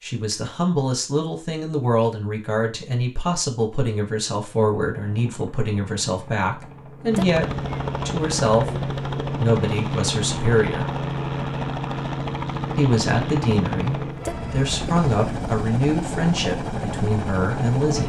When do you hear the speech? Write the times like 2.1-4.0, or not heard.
0.0-7.5, 8.1-10.8, 12.8-18.0.